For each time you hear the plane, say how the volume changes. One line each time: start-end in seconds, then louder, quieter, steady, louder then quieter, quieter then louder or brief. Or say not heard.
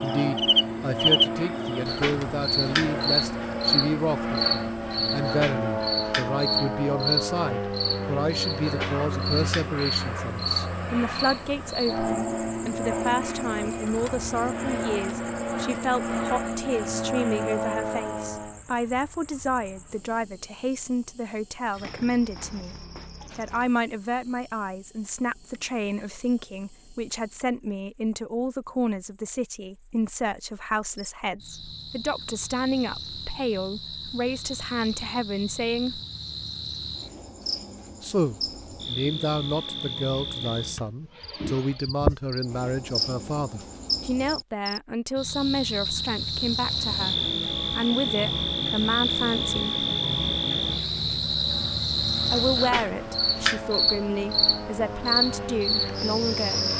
0.0-18.6 steady
46.5-56.7 louder.